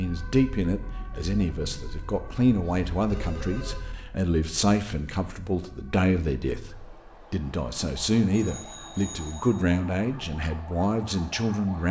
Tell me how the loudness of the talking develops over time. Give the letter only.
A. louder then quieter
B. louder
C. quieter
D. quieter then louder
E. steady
E.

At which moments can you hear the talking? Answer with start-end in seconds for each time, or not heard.
0.0-11.8.